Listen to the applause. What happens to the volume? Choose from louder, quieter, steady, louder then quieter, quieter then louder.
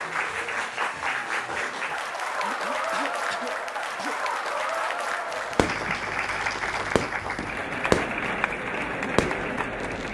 steady.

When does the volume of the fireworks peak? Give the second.
8 s.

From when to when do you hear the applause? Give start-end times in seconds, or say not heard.
0.0-10.0.